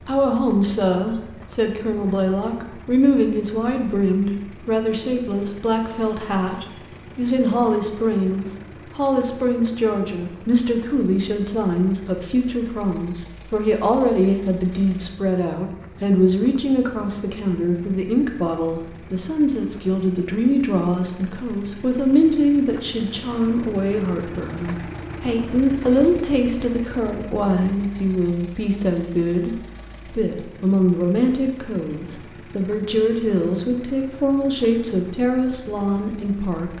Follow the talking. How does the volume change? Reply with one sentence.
The loudness of the talking stays about the same.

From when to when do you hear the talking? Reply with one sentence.
You can hear the talking from 0.0 to 36.7 s.